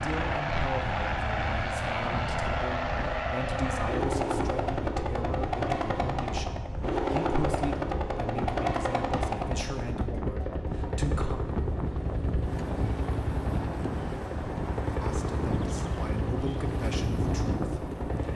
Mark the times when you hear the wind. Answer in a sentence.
You can hear the wind from 0.0 to 18.3 s.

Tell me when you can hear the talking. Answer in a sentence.
The talking can be heard from 0.0 to 11.4 s and from 15.0 to 18.3 s.